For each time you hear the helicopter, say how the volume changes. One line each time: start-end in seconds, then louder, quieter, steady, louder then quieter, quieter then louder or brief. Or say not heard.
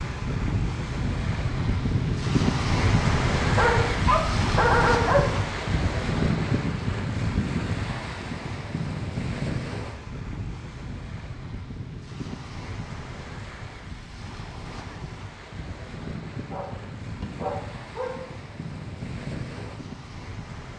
not heard.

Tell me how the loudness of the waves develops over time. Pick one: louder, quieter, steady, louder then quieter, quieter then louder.
quieter.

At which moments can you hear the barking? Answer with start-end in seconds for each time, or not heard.
3.5-5.3, 16.5-18.1.